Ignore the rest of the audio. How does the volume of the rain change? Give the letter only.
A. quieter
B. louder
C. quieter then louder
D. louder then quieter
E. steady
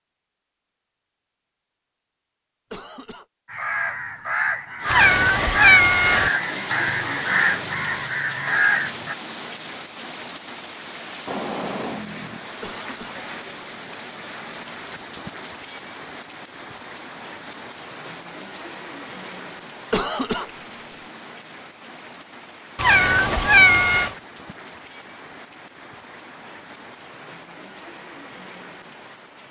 A.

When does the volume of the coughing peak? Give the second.
20 s.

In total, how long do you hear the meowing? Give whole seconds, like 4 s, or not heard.
3 s.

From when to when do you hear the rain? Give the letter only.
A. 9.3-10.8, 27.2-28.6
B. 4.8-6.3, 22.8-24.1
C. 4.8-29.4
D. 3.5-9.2
C.